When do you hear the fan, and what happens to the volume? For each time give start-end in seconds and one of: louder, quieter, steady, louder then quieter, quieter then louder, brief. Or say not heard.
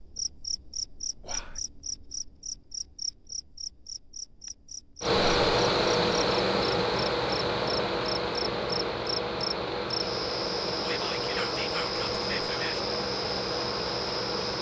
5.0-14.5 quieter.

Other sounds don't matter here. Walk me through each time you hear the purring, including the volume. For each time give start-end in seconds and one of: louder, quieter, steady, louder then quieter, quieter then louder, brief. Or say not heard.
not heard.